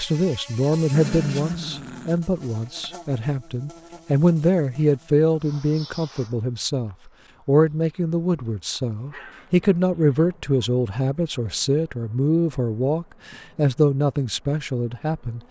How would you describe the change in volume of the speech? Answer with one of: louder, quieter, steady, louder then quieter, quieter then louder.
steady.